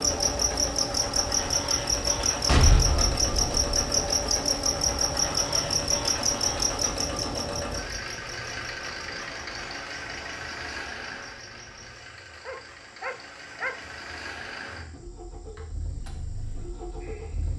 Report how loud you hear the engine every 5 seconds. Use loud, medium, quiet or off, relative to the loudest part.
loud, loud, medium, medium.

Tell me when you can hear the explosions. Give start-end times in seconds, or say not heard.
2.5-3.6.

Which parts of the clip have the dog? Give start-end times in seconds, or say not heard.
12.4-13.8.